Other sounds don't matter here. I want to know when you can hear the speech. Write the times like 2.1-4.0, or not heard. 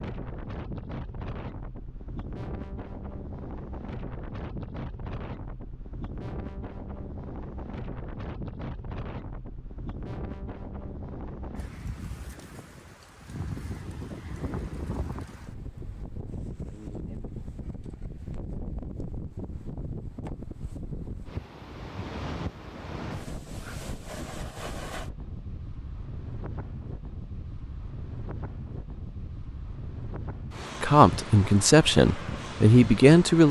30.8-33.4.